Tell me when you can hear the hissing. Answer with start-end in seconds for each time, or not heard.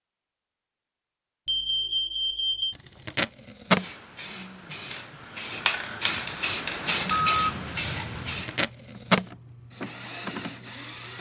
3.8-8.7.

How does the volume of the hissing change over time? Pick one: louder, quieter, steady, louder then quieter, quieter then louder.
louder then quieter.